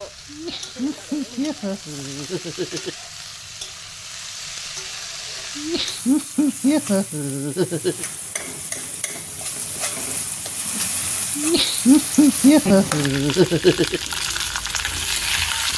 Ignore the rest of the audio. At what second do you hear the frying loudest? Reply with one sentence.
The volume of the frying peaks at 15 seconds.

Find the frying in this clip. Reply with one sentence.
You can hear the frying from 0.0 to 15.7 s.